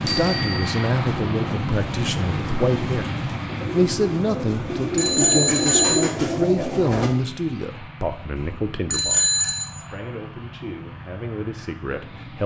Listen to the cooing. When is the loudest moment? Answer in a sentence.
The loudest moment of the cooing is at 6 seconds.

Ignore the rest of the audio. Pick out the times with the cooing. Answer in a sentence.
You can hear the cooing from 0.0 to 7.2 s.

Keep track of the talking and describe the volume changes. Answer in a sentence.
The volume of the talking goes down.